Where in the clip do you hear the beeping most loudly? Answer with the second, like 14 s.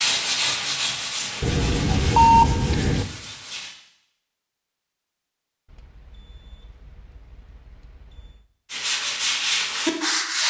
2 s.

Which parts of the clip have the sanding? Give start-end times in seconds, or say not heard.
0.0-3.8, 8.7-10.4.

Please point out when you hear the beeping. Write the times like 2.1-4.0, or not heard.
1.4-3.0, 5.7-8.4.